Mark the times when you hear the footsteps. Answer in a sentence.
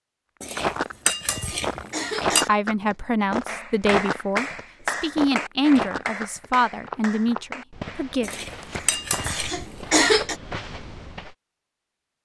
The footsteps can be heard from 0.6 to 11.3 s.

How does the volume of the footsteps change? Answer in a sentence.
The loudness of the footsteps goes down.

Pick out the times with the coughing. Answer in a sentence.
The coughing can be heard from 0.8 to 2.5 s and from 8.7 to 10.3 s.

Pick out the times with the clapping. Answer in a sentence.
You can hear the clapping from 3.5 to 9.5 s.